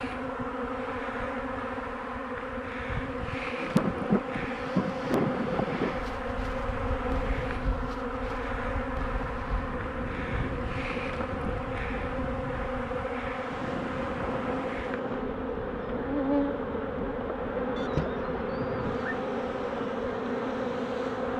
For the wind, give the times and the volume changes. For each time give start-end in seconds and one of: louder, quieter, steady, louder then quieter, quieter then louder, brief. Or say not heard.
3.5-21.3 quieter.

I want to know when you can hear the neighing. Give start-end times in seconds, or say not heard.
17.8-19.1.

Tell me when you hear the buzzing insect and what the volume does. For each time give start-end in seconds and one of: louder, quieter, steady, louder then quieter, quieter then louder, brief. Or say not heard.
0.0-21.3 steady.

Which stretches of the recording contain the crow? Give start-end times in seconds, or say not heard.
not heard.